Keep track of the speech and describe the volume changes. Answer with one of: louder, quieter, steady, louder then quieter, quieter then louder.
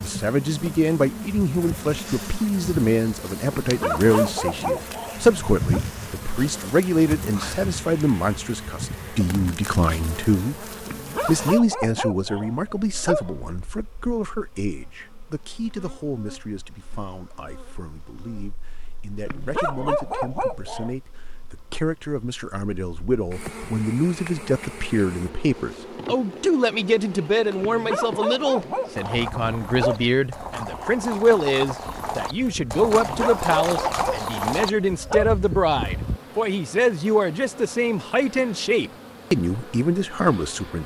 quieter then louder.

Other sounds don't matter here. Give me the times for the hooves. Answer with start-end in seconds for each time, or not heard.
28.9-36.2.